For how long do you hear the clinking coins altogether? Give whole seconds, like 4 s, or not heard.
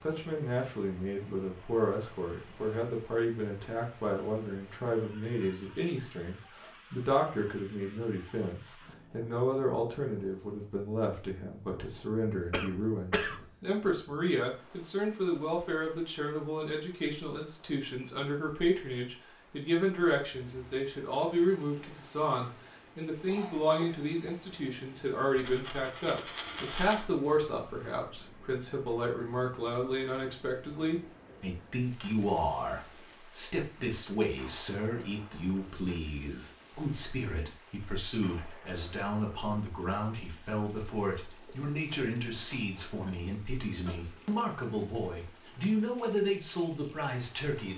2 s.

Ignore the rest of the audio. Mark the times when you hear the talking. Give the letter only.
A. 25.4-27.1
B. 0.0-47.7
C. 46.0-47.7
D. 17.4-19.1
B.